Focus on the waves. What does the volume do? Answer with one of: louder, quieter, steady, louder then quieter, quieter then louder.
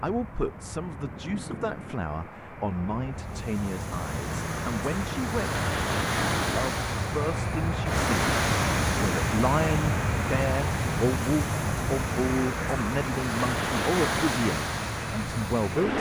steady.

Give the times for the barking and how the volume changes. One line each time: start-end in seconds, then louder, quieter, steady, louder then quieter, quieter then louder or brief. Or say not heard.
not heard.